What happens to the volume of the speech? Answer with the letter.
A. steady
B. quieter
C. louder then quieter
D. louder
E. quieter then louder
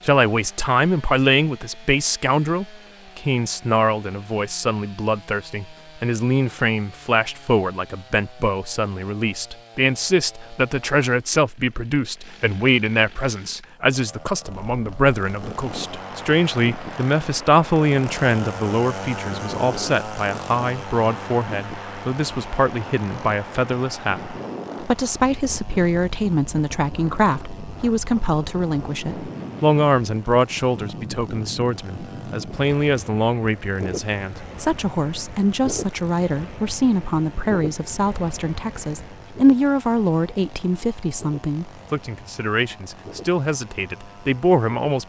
A.